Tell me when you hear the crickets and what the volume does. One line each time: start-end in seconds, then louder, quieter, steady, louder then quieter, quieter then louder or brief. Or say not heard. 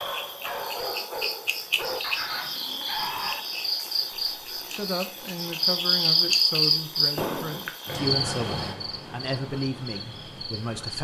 0.0-10.9 louder then quieter.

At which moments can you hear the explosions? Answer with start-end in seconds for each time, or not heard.
7.2-7.7.